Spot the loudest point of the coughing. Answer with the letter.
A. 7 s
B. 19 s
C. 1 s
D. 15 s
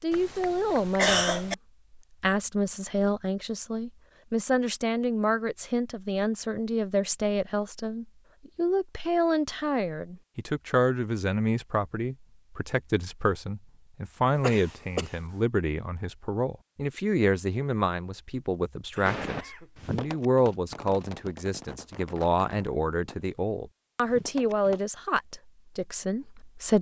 C.